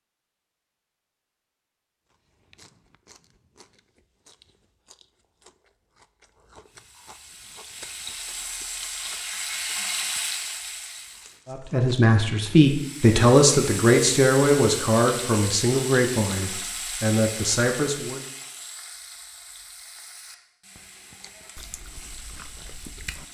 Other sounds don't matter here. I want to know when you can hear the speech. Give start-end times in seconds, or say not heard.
11.5-18.2.